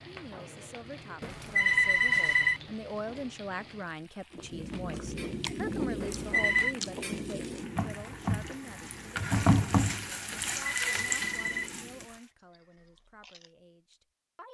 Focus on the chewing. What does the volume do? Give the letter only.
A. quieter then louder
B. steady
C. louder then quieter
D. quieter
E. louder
D.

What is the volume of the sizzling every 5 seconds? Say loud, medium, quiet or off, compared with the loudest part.
quiet, loud, loud.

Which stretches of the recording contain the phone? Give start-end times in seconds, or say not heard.
1.2-2.6, 6.0-6.8, 10.3-12.2.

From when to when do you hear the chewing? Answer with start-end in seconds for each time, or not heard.
4.3-13.5.